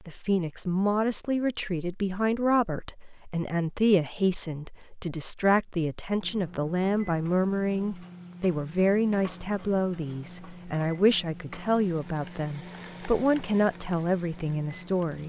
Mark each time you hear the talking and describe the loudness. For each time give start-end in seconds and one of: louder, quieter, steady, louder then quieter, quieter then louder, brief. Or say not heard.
0.1-15.2 steady.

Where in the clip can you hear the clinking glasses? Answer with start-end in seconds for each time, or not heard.
not heard.